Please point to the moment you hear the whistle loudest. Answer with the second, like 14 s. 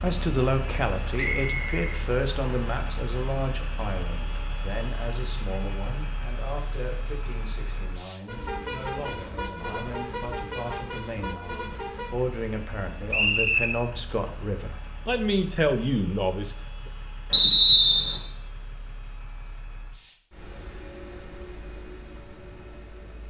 18 s.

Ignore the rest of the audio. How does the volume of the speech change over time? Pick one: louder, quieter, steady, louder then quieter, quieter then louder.
quieter then louder.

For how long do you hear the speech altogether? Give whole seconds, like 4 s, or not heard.
17 s.